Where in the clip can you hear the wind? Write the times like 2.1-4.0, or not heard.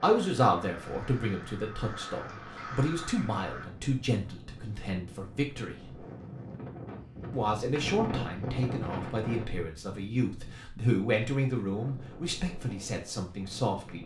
0.1-14.0.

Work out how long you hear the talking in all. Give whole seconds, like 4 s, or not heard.
13 s.